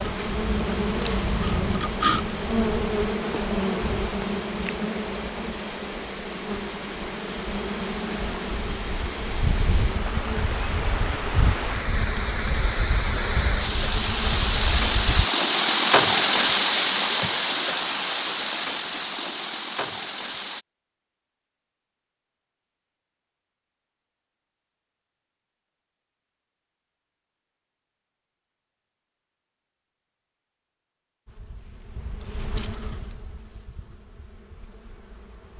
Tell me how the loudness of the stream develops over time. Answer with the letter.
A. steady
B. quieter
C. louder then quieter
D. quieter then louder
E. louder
E.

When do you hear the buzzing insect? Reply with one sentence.
You can hear the buzzing insect from 0.0 to 15.2 s and from 31.2 to 35.5 s.